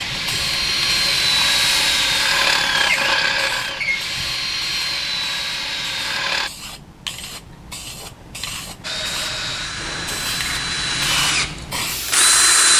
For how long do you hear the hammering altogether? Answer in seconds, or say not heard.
not heard.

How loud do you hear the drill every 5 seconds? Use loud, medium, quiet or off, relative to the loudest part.
loud, medium, loud.